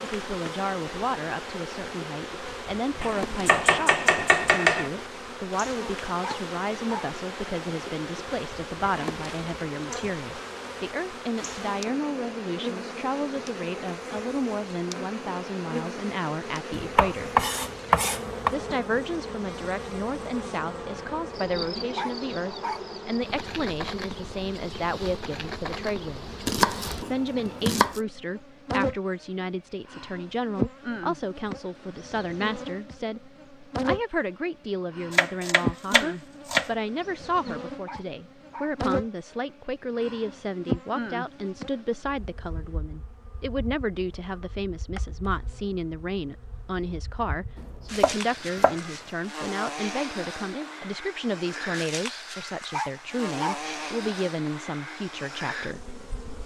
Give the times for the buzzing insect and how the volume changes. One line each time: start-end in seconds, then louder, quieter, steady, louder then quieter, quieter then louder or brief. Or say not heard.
0.0-56.4 steady.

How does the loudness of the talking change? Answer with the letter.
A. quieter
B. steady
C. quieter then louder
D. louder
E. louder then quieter
B.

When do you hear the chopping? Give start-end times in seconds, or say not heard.
3.0-4.9, 16.7-18.5, 26.4-28.0, 35.1-36.7, 48.0-48.8.